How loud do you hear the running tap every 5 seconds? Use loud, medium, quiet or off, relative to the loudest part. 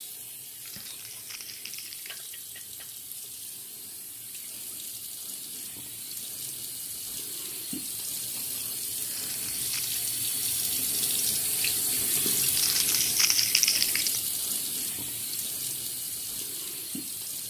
quiet, medium, loud, medium.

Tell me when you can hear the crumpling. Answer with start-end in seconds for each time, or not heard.
0.7-2.3, 9.1-10.0, 12.6-14.2.